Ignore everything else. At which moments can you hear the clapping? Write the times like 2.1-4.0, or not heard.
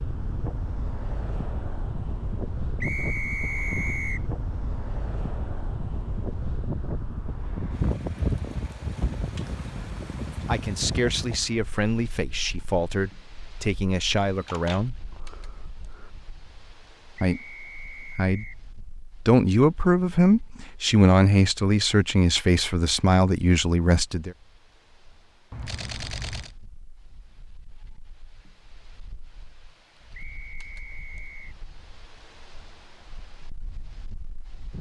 not heard.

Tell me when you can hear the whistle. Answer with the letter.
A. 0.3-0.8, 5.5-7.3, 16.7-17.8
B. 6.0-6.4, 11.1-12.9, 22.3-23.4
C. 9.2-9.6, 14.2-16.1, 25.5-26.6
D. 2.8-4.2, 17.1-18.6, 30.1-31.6
D.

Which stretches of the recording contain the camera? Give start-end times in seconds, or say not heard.
9.2-9.6, 14.2-16.1, 25.5-26.6.